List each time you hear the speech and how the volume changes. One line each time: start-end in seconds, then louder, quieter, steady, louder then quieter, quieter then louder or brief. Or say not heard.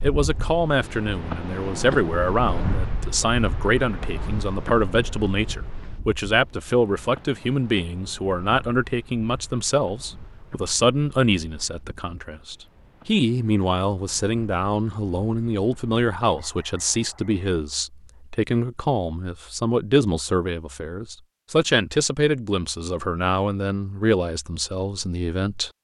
0.0-25.7 steady.